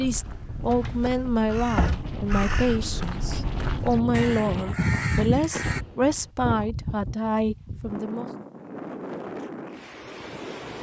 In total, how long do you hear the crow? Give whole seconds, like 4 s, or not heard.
6 s.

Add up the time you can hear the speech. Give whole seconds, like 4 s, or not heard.
8 s.